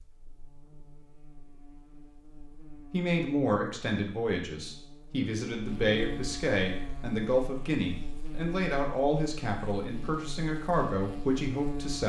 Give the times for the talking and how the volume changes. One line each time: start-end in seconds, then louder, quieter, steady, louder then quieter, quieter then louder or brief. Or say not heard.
2.9-12.0 steady.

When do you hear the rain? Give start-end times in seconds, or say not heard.
not heard.